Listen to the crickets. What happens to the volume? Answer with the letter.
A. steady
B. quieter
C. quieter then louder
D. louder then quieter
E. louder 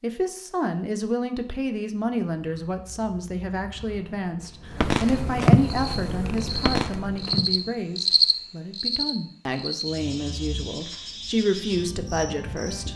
D.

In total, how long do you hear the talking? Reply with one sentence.
The talking can be heard for 13 seconds in total.